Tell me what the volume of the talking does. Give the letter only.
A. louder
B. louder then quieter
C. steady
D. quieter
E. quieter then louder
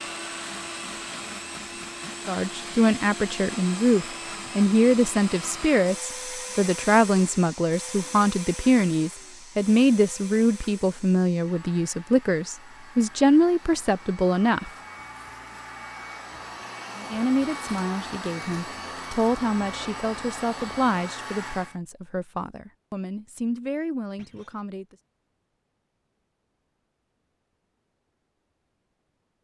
D.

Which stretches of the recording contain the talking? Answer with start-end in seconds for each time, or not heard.
2.2-14.7, 16.9-24.9.